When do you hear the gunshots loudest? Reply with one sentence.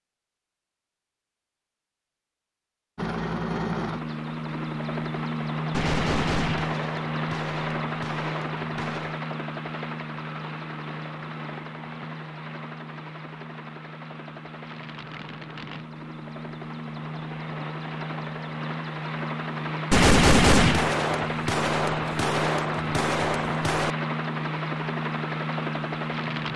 The volume of the gunshots peaks at 20 seconds.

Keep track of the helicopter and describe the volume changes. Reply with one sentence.
The loudness of the helicopter goes down, then up.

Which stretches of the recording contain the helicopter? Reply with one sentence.
You can hear the helicopter from 3.0 to 26.5 s.